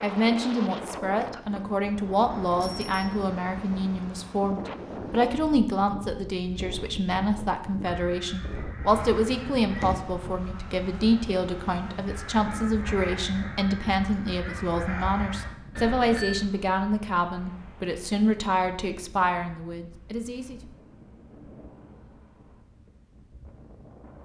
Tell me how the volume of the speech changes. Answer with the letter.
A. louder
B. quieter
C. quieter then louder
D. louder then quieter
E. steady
E.